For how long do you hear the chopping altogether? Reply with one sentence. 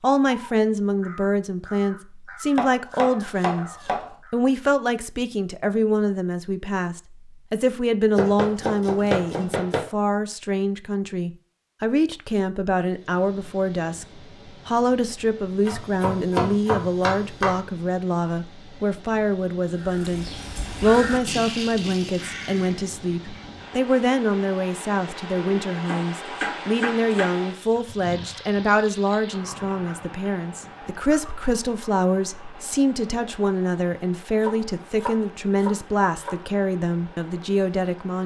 The chopping can be heard for 9 seconds in total.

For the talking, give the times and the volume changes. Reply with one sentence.
You can hear the talking from 0.0 to 38.2 s, at a steady volume.